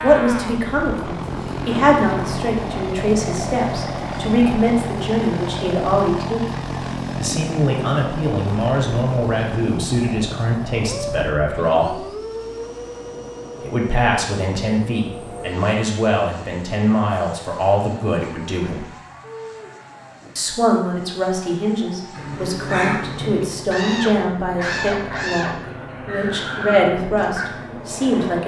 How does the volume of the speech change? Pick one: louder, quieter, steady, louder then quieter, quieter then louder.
steady.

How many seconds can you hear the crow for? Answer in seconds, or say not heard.
5 s.